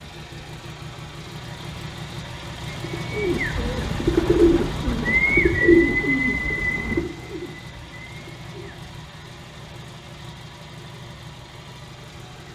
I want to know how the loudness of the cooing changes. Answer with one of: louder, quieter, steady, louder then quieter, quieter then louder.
louder then quieter.